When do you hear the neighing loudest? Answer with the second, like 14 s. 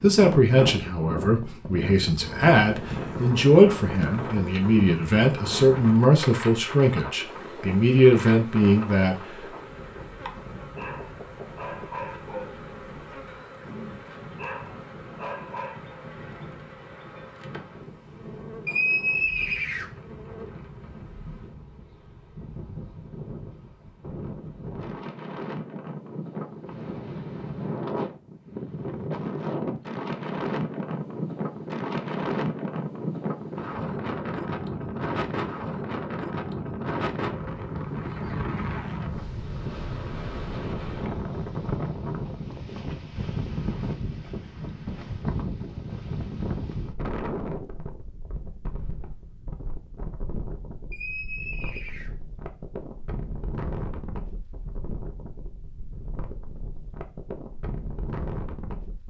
19 s.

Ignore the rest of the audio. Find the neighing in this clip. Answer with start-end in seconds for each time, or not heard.
18.6-19.9, 50.9-52.1.